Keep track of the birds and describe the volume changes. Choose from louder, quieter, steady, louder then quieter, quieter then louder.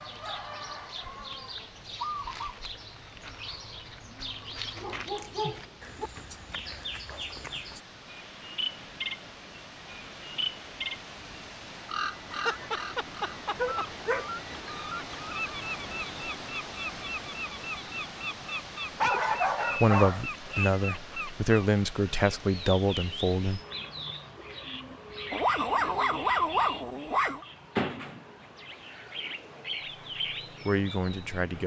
steady.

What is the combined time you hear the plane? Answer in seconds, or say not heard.
not heard.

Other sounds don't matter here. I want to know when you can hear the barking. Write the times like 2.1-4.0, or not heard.
4.8-6.1, 12.3-14.3, 19.0-20.8, 25.3-27.4.